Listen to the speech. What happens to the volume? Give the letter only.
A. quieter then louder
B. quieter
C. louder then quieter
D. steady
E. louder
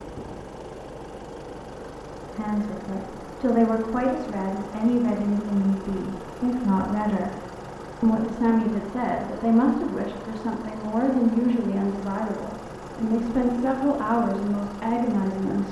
D.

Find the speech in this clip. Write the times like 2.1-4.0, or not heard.
2.4-7.3, 8.0-15.6.